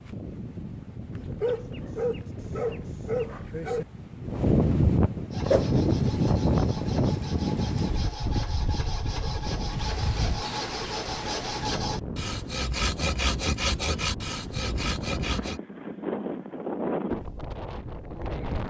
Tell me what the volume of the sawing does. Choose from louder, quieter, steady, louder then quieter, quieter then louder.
louder.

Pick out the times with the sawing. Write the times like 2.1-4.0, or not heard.
5.3-15.6.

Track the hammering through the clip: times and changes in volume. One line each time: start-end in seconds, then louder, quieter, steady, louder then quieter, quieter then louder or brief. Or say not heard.
not heard.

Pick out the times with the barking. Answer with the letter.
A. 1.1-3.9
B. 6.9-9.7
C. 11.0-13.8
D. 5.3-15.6
A.